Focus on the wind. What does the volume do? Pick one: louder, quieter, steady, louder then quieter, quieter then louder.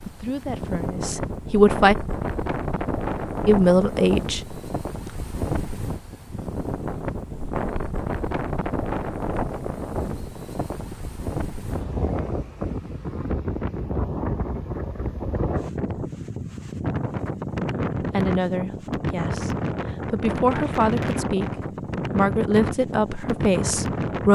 steady.